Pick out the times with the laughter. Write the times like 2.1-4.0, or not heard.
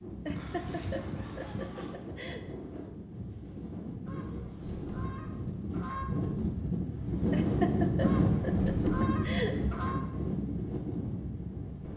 0.2-2.5, 7.3-9.6.